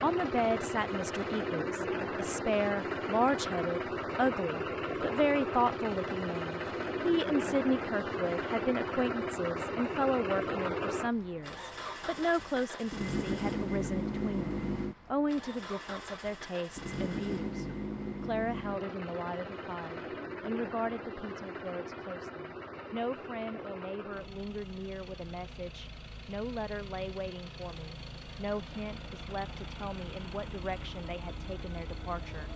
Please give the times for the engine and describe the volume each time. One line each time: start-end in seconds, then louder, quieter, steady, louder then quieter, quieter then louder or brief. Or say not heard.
0.0-32.5 quieter.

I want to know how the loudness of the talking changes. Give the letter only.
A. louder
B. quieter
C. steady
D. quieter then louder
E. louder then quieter
B.